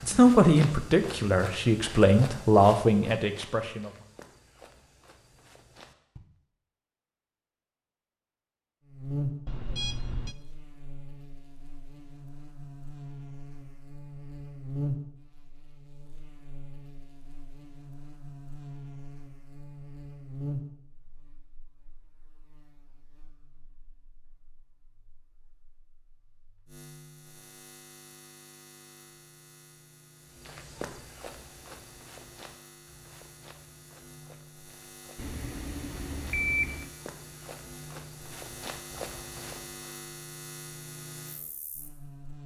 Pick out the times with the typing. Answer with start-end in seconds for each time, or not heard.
not heard.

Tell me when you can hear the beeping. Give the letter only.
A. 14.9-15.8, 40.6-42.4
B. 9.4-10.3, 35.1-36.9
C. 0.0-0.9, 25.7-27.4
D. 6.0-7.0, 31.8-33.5
B.